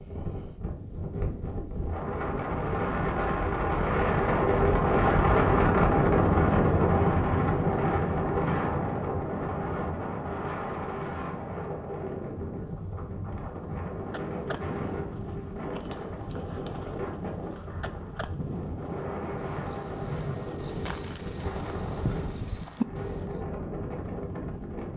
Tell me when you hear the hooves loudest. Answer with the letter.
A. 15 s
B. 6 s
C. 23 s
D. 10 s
C.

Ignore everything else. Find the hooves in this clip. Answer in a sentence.
The hooves can be heard from 14.0 to 23.4 s.